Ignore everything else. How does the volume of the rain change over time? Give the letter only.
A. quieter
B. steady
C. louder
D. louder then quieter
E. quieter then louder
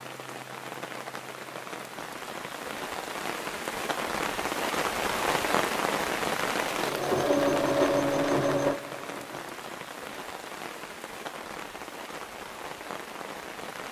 D.